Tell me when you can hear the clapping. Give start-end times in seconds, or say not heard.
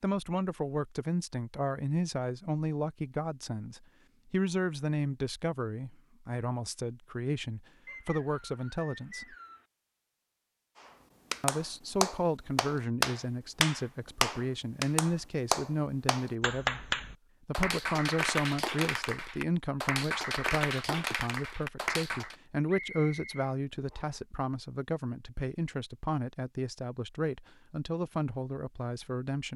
11.3-22.4.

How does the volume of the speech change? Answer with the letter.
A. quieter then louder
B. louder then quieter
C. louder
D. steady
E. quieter
D.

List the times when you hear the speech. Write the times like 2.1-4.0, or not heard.
0.0-9.3, 11.4-29.5.